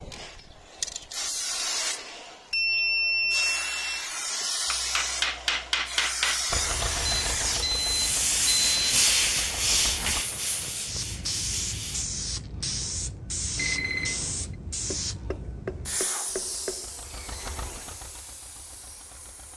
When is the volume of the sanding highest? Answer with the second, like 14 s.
9 s.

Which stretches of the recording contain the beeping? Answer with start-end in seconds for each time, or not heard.
2.5-4.0, 7.0-9.1, 13.6-14.4.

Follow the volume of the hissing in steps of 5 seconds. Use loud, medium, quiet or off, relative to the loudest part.
loud, loud, loud, medium.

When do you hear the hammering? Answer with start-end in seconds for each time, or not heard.
4.7-6.5, 14.9-16.9.